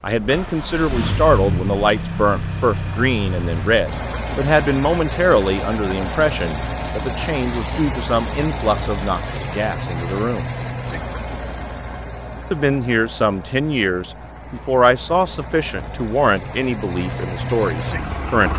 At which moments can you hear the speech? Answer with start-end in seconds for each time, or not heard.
0.0-10.5, 12.5-18.5.